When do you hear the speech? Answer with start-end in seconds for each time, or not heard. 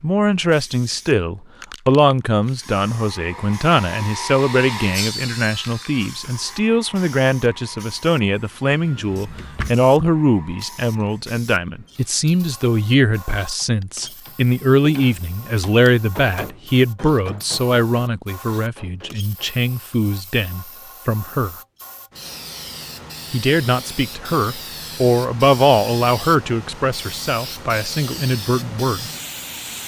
0.0-21.6, 23.3-29.1.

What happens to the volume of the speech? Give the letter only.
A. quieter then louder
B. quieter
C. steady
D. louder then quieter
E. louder
C.